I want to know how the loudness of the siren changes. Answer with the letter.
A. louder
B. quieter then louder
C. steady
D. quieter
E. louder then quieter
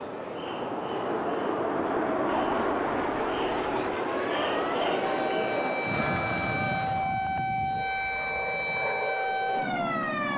A.